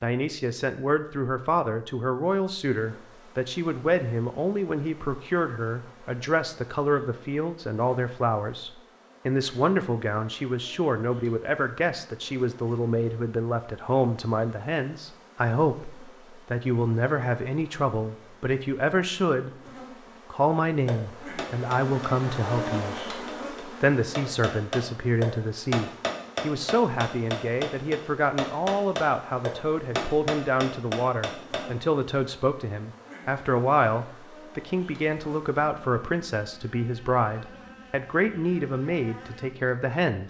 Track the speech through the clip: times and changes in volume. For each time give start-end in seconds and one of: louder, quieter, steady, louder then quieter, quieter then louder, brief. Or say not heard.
0.0-19.5 steady
20.3-40.2 steady.